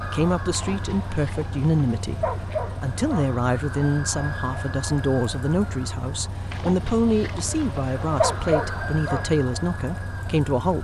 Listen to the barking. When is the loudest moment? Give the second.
8 s.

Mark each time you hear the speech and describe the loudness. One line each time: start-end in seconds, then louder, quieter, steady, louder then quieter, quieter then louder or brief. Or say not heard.
0.1-10.8 steady.